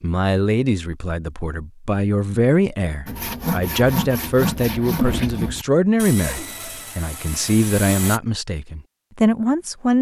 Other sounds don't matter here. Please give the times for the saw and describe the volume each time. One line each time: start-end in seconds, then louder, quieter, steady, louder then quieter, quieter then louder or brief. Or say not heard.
3.0-8.2 quieter.